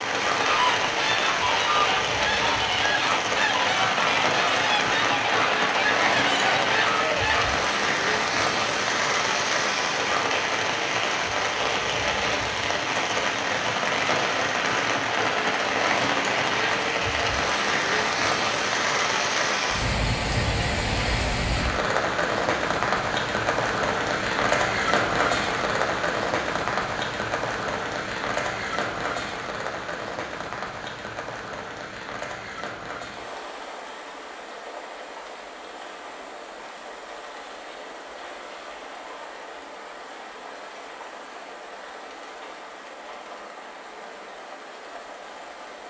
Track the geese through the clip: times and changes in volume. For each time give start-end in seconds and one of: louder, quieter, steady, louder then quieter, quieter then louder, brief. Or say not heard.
0.3-7.6 steady.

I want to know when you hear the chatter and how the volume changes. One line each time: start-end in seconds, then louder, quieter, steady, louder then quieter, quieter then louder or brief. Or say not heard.
not heard.